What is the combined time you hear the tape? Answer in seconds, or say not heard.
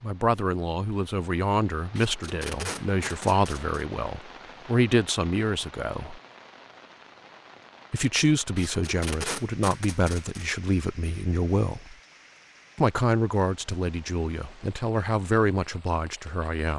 4 s.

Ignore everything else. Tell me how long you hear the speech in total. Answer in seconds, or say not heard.
14 s.